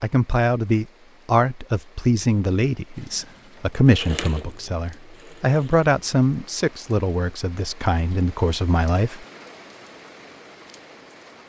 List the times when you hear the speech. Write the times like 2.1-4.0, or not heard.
0.0-9.2.